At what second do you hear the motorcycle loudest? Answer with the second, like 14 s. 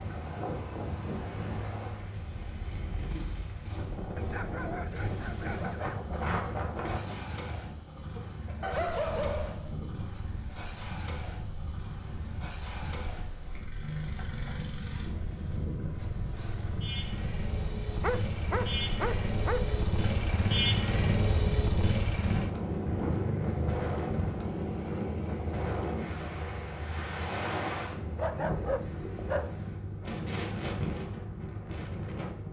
21 s.